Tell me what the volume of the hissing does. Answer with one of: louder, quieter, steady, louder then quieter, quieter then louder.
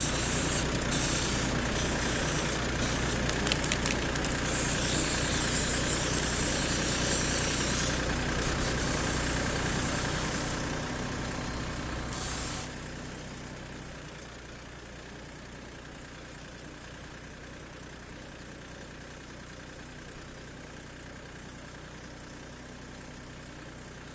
quieter.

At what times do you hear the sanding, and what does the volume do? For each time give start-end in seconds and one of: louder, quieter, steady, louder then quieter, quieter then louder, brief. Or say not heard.
not heard.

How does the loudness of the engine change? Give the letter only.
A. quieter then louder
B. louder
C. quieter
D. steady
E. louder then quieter
C.